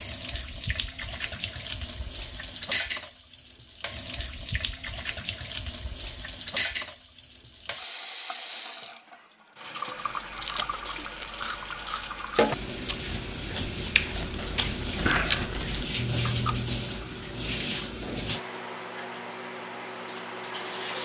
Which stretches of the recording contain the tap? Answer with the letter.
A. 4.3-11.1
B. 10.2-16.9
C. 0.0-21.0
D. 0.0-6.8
C.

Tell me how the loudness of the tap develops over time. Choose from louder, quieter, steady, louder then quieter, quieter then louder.
steady.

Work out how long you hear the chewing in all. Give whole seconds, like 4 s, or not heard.
7 s.